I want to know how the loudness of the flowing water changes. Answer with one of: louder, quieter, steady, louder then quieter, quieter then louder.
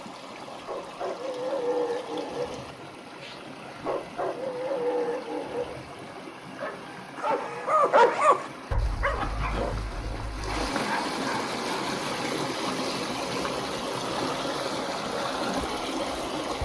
louder.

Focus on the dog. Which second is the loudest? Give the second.
8 s.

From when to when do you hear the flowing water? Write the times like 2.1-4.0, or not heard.
0.0-16.6.